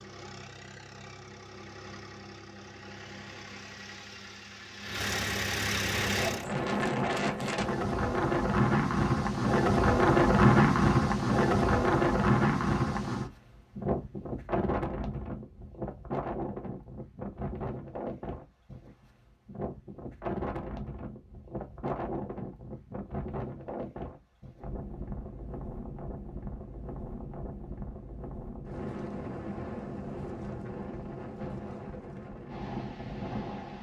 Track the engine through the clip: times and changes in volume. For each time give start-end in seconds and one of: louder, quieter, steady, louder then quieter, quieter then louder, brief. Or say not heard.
0.0-6.5 louder.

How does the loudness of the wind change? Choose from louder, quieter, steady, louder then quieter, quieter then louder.
quieter.